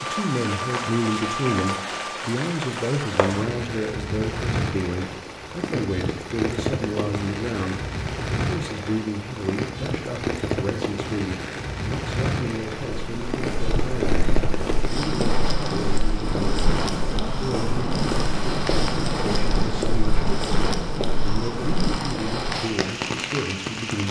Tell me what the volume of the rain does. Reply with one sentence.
The loudness of the rain stays about the same.